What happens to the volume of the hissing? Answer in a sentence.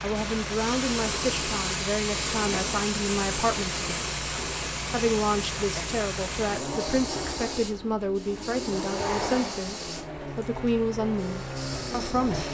The volume of the hissing goes down.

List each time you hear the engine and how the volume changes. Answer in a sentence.
You can hear the engine from 0.0 to 12.4 s, at a steady volume.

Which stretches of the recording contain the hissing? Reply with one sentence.
The hissing can be heard from 0.0 to 12.4 s.